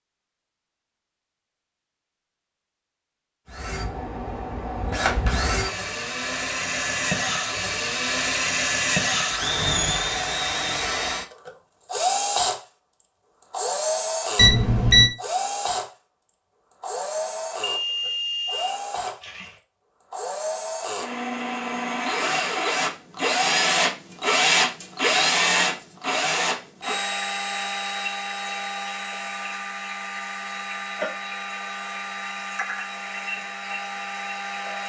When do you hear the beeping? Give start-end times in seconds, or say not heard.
14.3-15.1, 17.6-19.5.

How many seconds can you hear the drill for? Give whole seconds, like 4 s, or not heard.
29 s.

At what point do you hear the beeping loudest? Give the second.
15 s.